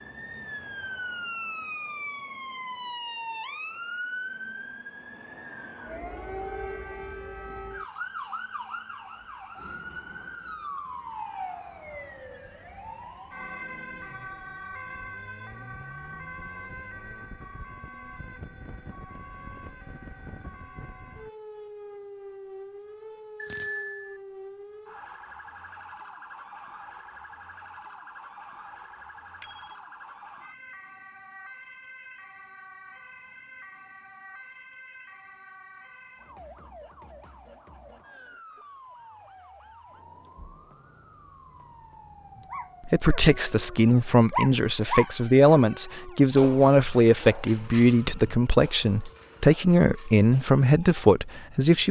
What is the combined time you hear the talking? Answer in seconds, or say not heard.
9 s.